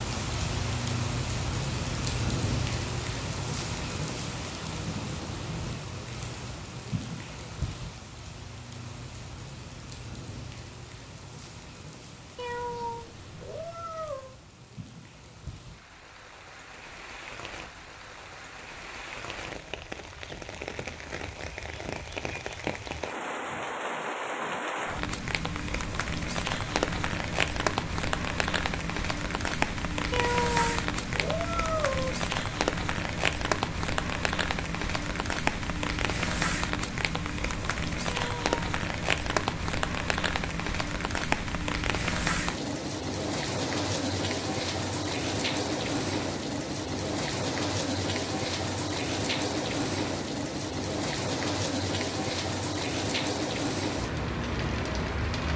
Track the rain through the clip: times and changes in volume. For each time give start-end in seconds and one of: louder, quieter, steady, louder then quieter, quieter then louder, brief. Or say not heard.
0.0-55.5 quieter then louder.